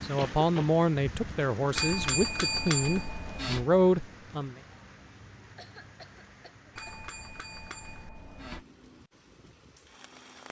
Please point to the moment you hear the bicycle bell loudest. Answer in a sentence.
The loudest moment of the bicycle bell is at 3 seconds.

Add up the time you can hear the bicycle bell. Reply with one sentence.
You can hear the bicycle bell for 4 seconds altogether.